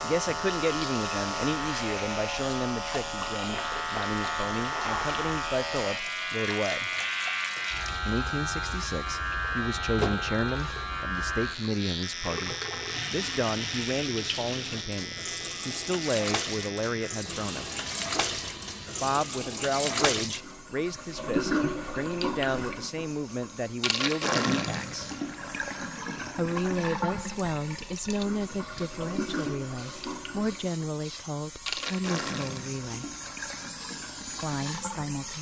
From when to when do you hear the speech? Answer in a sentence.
You can hear the speech from 0.0 to 6.9 s, from 8.1 to 17.6 s, from 19.0 to 25.1 s, from 26.4 to 33.0 s and from 34.4 to 35.3 s.